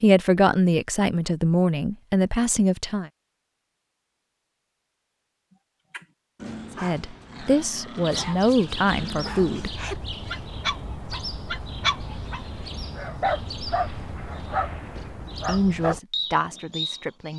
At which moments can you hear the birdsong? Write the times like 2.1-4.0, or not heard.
8.0-17.3.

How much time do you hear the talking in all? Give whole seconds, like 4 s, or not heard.
8 s.